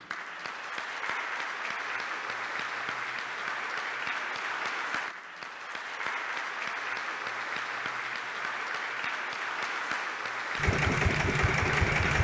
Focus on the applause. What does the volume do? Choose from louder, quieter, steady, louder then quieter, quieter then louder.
steady.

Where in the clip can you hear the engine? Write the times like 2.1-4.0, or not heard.
10.6-12.1.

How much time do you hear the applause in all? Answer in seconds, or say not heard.
12 s.